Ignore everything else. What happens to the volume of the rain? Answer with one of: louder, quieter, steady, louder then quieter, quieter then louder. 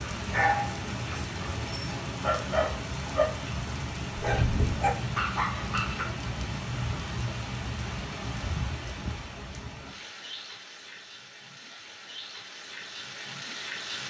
quieter.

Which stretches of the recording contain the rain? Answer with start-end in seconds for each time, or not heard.
0.0-14.0.